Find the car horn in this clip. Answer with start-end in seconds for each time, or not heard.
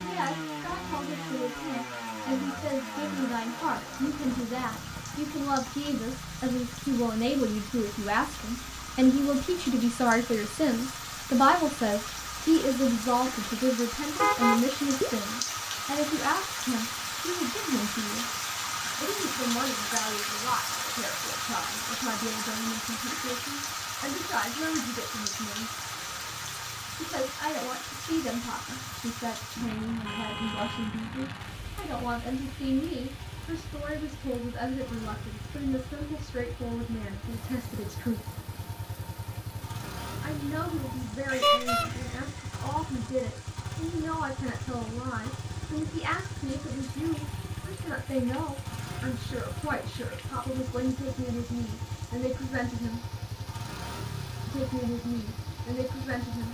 14.2-15.1, 30.1-31.0, 41.4-41.9.